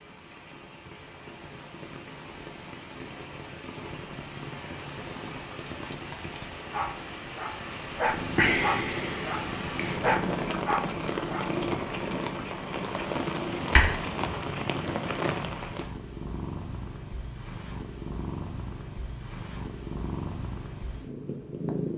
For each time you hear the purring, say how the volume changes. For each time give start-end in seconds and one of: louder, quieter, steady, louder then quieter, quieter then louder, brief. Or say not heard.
8.1-21.9 quieter.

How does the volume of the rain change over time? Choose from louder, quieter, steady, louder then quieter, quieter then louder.
louder.